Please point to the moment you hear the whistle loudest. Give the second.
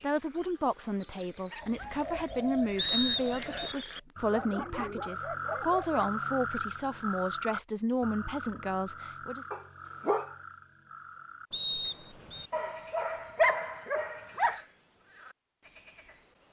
3 s.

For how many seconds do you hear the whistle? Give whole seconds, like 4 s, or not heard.
2 s.